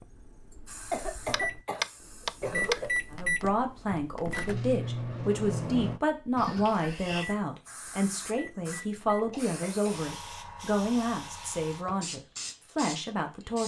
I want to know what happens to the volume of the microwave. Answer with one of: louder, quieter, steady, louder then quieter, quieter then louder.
louder then quieter.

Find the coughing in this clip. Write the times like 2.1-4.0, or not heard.
0.9-2.9, 6.3-7.2, 9.3-10.5.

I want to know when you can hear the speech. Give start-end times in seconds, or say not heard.
3.1-13.6.